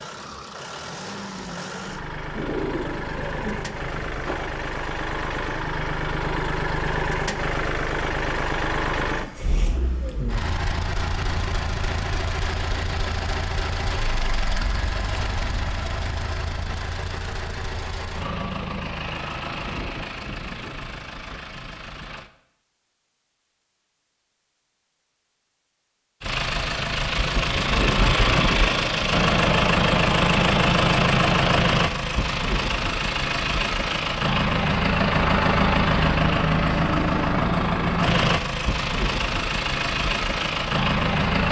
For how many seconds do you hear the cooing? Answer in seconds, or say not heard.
2 s.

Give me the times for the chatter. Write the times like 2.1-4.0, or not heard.
not heard.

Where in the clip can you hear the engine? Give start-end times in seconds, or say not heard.
0.0-22.3, 26.2-41.4.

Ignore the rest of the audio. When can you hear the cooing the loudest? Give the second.
3 s.